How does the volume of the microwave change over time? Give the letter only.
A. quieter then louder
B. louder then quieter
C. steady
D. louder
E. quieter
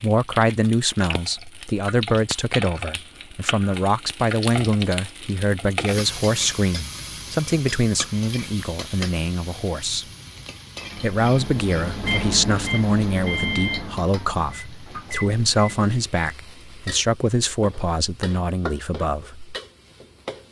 B.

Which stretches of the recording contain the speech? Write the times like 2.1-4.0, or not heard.
0.0-10.1, 11.0-19.6.